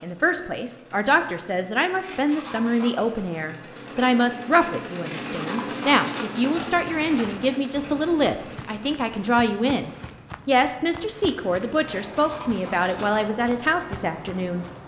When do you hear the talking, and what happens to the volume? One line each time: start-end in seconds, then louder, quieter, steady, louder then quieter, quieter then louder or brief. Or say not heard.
0.0-14.7 steady.